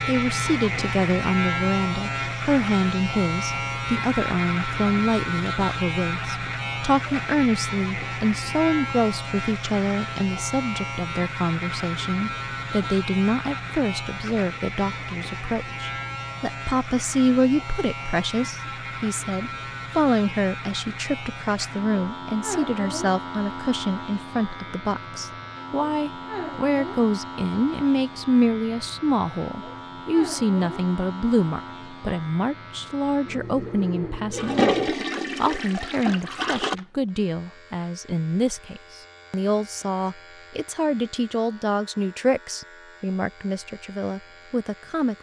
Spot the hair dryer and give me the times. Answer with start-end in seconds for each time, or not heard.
not heard.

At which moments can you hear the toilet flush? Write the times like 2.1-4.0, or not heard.
34.3-36.8.